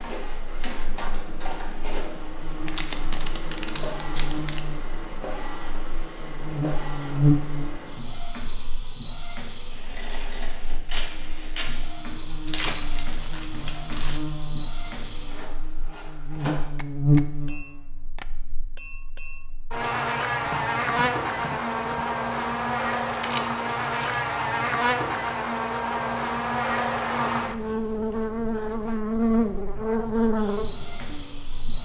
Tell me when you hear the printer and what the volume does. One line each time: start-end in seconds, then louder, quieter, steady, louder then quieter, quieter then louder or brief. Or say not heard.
0.0-16.6 steady
30.4-31.8 brief.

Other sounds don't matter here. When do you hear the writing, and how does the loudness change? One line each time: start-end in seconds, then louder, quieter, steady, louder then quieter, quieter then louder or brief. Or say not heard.
not heard.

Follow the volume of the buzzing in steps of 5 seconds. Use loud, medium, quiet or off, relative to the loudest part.
quiet, loud, quiet, loud, loud, loud, loud.